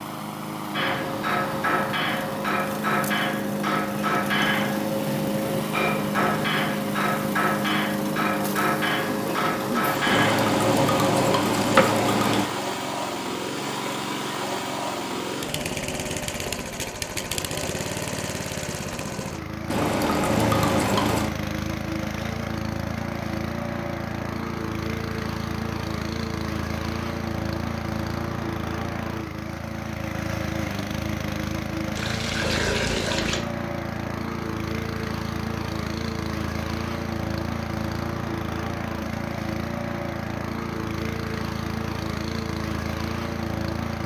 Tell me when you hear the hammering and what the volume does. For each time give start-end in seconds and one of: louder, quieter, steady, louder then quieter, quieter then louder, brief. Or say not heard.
0.7-12.0 steady.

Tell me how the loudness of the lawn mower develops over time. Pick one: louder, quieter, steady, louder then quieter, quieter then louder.
steady.